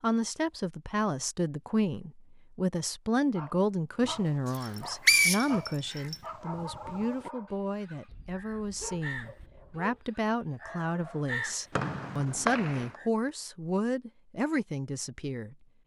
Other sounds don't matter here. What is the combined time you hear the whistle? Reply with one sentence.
You can hear the whistle for 3 seconds altogether.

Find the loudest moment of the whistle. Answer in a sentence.
The loudest moment of the whistle is at 5 seconds.